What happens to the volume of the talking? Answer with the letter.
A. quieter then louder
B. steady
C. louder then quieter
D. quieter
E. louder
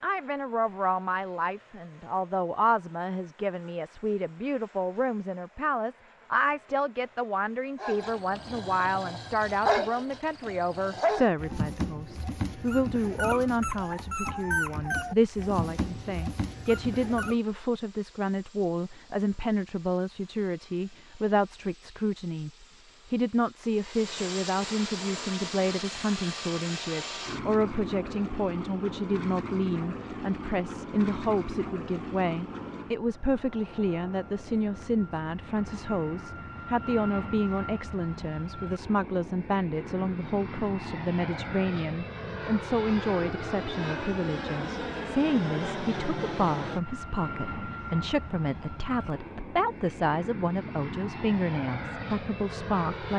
B.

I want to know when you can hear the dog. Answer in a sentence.
You can hear the dog from 7.8 to 17.4 s.